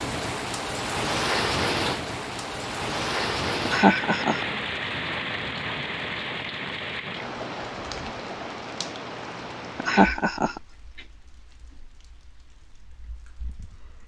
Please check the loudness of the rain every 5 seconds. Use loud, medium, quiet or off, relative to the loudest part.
loud, medium, quiet.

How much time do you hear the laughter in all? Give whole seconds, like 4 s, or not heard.
2 s.